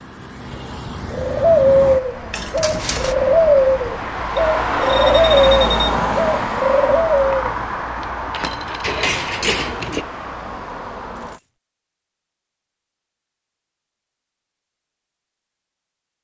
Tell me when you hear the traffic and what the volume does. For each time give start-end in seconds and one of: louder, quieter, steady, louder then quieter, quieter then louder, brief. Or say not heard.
0.0-11.4 louder then quieter.